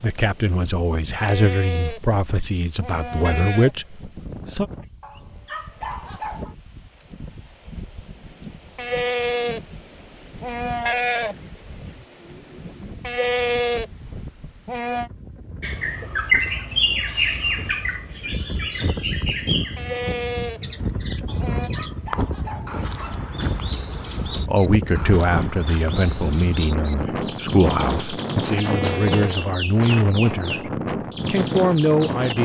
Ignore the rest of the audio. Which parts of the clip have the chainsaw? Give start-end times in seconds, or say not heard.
not heard.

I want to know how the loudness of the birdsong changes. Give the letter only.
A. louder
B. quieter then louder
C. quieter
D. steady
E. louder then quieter
C.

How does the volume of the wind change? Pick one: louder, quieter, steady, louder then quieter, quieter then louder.
louder.